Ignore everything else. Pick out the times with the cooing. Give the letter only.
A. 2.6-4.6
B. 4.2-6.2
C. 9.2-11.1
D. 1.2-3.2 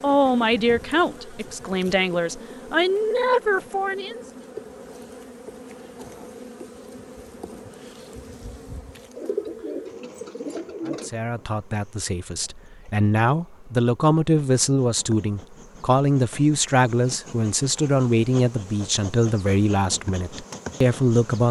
C.